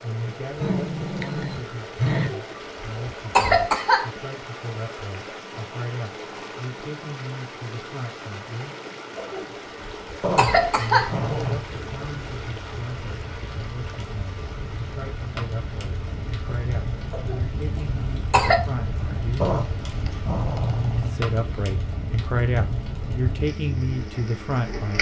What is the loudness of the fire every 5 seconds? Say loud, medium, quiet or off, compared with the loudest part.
off, off, medium, loud, loud.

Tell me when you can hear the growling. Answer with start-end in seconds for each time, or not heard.
0.2-2.3, 10.2-11.7, 19.4-21.1.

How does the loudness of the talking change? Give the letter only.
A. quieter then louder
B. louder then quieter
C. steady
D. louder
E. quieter
D.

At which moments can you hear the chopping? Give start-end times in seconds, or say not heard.
not heard.